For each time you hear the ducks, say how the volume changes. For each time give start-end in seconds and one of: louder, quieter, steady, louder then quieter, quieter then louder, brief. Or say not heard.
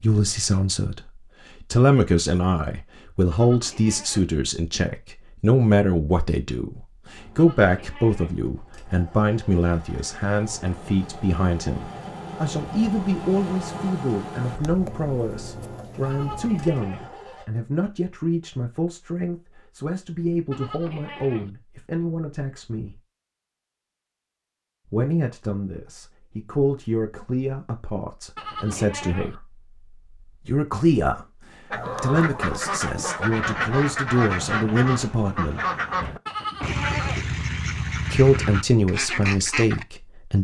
31.7-39.9 steady.